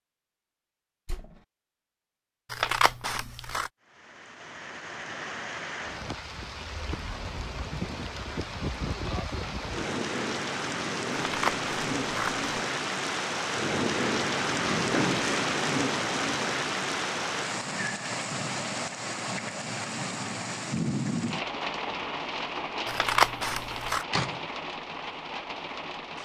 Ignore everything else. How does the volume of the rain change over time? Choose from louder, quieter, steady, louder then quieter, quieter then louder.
louder then quieter.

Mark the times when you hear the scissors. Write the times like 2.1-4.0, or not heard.
2.5-3.7, 11.2-12.4, 22.9-24.1.